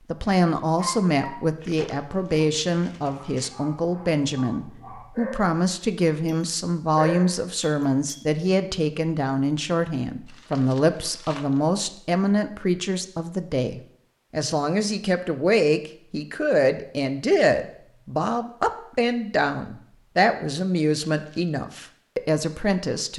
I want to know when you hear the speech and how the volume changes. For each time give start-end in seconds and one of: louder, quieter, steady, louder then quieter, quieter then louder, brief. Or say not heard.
0.1-23.1 steady.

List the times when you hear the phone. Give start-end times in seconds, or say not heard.
not heard.